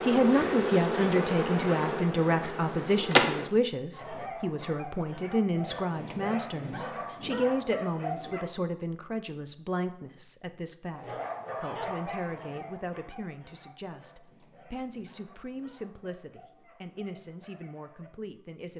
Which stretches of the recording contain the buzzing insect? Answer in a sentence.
You can hear the buzzing insect from 0.0 to 3.5 s.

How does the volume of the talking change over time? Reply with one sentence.
The volume of the talking goes down.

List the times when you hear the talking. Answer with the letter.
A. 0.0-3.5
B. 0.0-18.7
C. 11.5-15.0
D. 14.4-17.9
B.